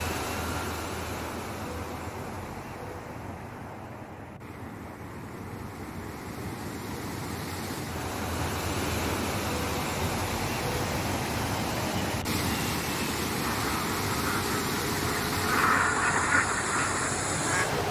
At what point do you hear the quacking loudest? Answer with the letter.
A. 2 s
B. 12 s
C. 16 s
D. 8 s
C.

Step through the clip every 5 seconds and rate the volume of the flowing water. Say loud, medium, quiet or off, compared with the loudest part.
medium, loud, loud, loud.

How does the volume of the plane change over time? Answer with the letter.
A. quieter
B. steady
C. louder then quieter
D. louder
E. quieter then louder
D.